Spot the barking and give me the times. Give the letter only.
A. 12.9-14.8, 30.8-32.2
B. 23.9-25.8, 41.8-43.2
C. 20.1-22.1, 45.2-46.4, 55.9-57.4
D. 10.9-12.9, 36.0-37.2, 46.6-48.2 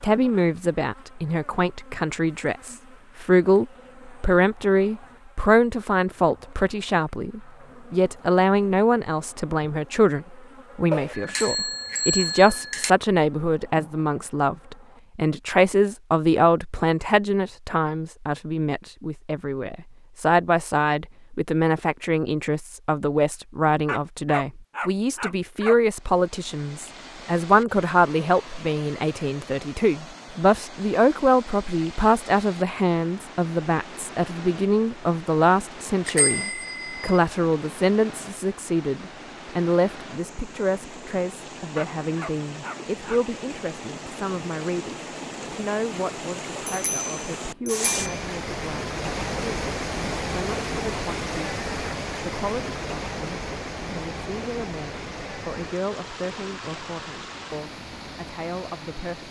B.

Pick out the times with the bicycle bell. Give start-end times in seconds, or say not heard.
10.9-12.9, 36.0-37.2, 46.6-48.2.